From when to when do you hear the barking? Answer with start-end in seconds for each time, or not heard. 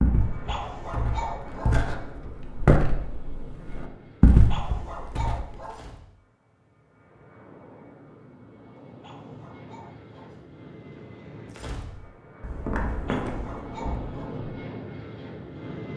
0.2-1.9, 4.5-6.0, 9.0-10.4, 12.8-14.3.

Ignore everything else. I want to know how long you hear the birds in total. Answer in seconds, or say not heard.
not heard.